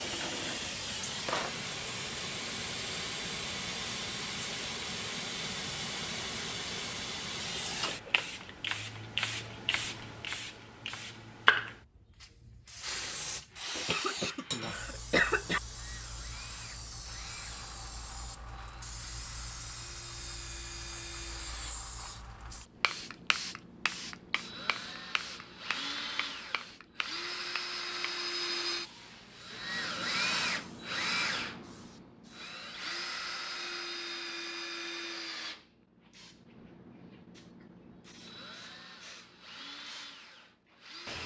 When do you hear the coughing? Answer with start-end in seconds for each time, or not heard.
13.8-15.6.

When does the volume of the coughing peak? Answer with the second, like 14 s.
15 s.